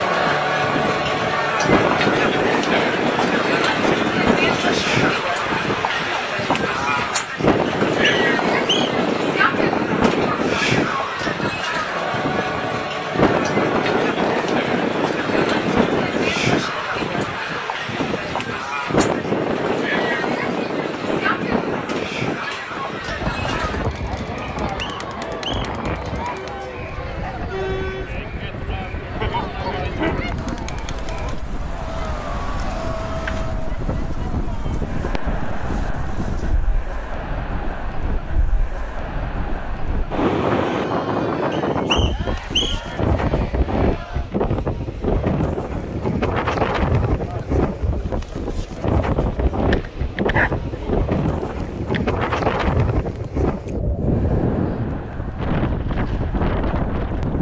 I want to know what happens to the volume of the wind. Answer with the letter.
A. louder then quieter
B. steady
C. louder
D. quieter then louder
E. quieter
D.